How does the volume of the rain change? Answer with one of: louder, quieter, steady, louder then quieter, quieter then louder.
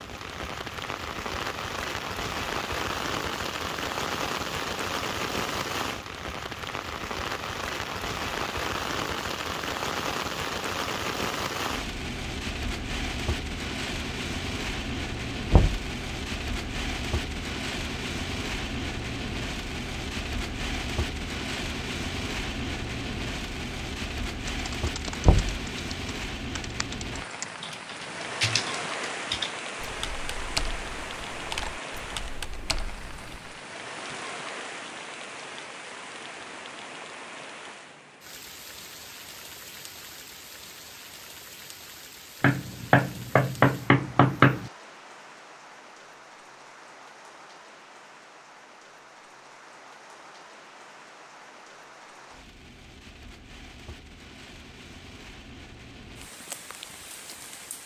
quieter.